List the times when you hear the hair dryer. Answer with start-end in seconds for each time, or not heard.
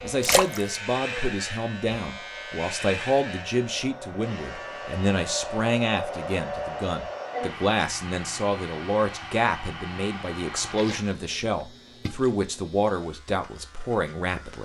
0.0-11.1.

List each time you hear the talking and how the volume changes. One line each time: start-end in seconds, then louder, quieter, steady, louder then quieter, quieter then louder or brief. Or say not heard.
0.0-14.5 steady.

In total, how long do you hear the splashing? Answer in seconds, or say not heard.
2 s.